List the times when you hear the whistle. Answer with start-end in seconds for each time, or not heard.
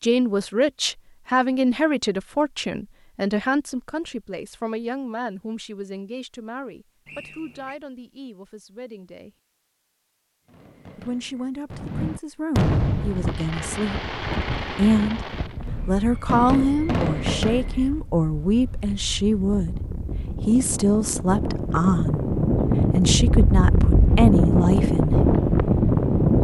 7.0-7.8.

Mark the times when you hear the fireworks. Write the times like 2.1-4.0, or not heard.
10.4-17.9.